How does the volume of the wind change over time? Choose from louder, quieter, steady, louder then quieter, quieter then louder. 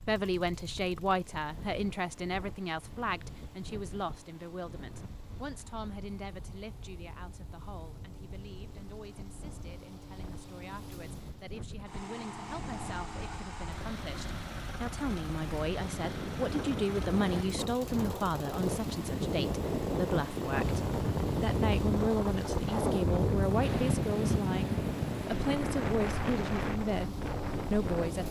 louder.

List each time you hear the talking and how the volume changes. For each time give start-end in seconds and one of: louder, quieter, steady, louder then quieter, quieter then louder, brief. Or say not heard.
0.0-28.2 quieter then louder.